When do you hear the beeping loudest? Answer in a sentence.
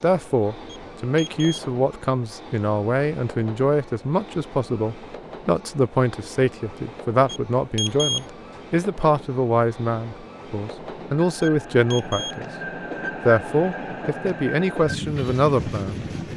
The loudest moment of the beeping is at 8 seconds.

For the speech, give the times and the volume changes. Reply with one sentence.
The speech can be heard from 0.0 to 12.4 s, at a steady volume; and briefly from 13.2 to 16.0 s.